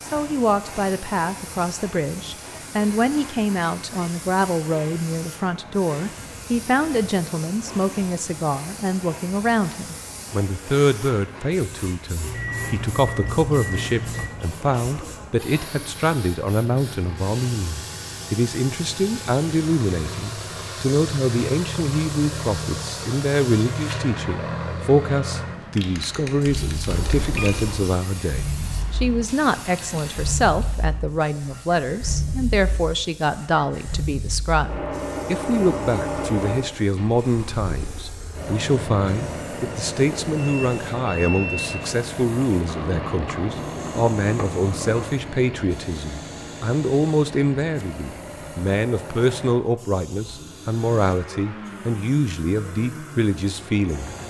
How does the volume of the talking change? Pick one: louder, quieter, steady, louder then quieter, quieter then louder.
steady.